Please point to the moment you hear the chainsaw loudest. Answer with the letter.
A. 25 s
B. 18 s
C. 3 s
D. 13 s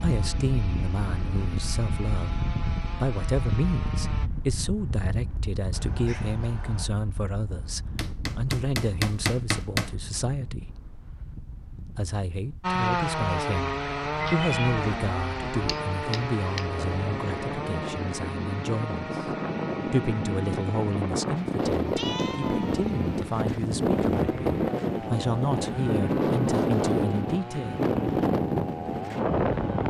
D.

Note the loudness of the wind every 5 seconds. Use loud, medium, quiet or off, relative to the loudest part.
medium, quiet, quiet, medium, loud, loud.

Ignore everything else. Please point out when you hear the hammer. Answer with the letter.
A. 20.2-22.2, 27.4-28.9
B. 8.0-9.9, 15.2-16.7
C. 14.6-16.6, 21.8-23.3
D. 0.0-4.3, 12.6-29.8
B.